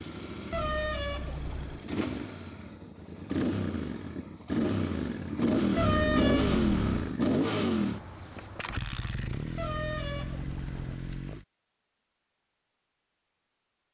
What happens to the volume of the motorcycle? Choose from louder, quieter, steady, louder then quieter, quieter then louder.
louder then quieter.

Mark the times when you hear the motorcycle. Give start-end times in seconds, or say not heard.
0.0-11.4.